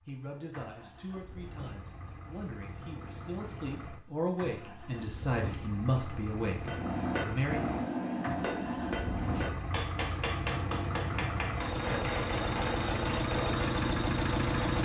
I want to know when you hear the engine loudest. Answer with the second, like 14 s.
14 s.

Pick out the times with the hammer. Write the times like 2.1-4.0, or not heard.
6.6-13.7.